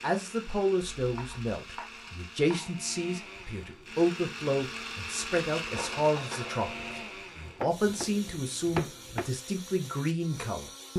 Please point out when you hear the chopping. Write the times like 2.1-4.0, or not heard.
1.0-2.7, 7.5-9.3.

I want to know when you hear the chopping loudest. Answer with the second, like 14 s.
9 s.